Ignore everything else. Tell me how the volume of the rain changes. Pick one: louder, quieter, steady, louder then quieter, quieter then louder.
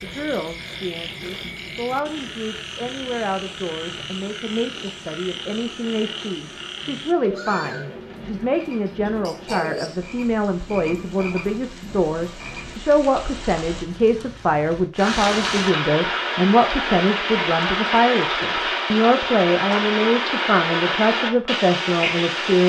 louder.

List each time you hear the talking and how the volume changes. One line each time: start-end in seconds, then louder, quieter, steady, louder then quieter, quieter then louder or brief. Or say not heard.
0.0-22.6 louder.